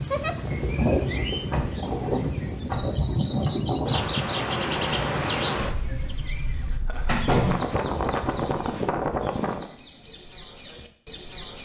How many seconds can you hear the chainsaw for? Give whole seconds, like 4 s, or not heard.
not heard.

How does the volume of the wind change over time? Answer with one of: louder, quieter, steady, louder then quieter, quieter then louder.
quieter then louder.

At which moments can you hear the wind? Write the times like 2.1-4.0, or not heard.
0.0-9.7.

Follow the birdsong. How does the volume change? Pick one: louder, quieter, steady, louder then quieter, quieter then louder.
quieter.